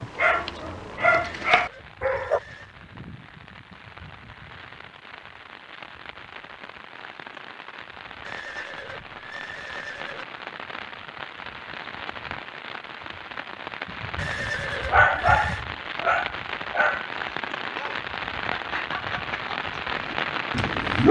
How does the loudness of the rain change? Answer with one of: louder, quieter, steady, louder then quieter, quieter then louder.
louder.